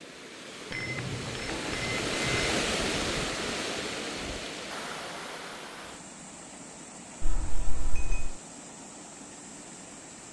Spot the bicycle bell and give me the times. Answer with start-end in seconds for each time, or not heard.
0.7-2.6, 7.2-8.3.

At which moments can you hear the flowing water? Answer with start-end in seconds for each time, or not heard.
0.0-10.2.